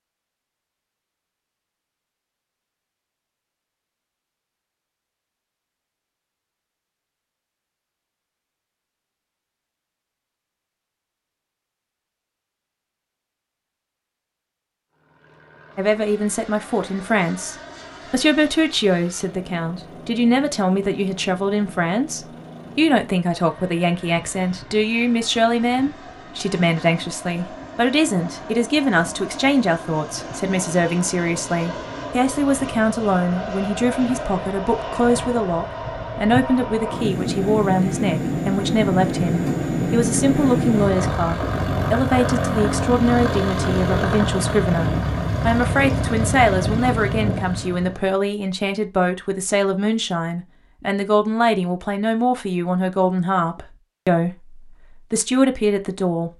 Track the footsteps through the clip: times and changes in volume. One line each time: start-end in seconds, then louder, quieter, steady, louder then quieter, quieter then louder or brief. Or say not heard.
not heard.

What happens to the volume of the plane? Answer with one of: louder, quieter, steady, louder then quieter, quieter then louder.
louder.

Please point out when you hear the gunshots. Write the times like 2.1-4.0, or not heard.
not heard.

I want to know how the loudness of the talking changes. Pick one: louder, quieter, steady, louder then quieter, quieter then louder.
steady.